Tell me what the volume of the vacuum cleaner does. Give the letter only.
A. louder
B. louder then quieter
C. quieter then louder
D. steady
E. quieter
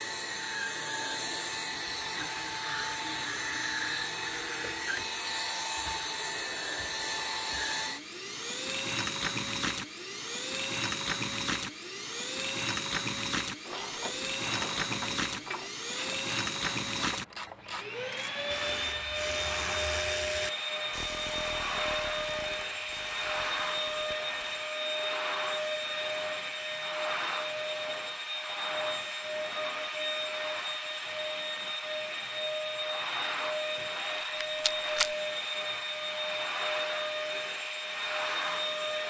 D.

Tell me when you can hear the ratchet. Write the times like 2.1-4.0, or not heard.
13.7-24.6.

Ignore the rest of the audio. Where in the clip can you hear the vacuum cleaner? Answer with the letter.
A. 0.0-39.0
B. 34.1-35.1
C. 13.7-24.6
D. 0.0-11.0
A.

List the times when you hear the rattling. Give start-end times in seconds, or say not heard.
34.1-35.1.